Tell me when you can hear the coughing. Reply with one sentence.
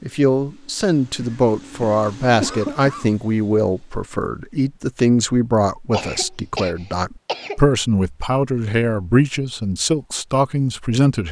You can hear the coughing from 1.2 to 3.1 s and from 5.9 to 7.6 s.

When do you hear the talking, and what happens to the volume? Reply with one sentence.
The talking can be heard from 0.0 to 11.2 s, at a steady volume.